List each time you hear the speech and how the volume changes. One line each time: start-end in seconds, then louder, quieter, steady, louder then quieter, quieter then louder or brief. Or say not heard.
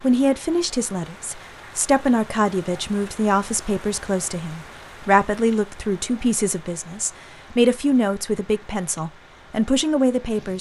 0.0-10.5 steady.